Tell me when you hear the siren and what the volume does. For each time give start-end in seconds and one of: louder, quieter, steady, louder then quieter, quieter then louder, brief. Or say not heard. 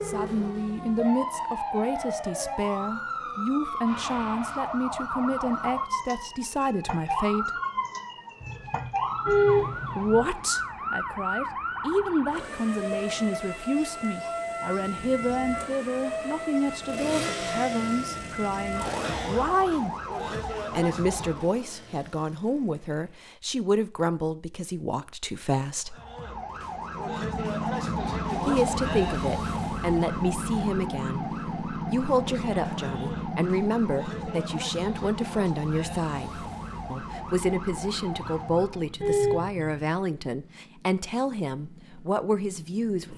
0.0-21.6 steady
25.9-38.9 quieter.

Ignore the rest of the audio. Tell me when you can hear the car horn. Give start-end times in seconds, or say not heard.
8.4-10.2, 38.1-39.8.